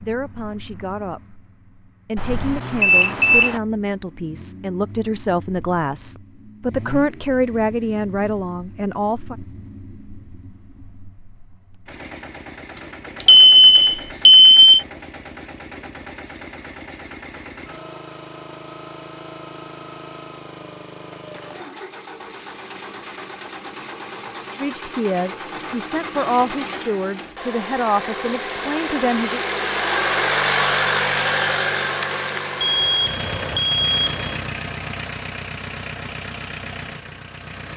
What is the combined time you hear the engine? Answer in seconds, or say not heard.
38 s.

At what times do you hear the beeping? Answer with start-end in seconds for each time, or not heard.
2.1-3.6, 13.2-14.8, 32.6-34.4.